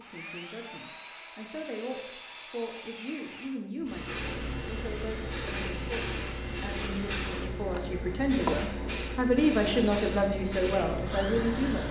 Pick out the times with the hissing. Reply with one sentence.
You can hear the hissing from 3.8 to 11.8 s.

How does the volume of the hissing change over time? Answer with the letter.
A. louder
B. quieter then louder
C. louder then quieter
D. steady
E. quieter
D.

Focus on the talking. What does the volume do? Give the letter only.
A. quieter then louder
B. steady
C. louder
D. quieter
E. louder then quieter
C.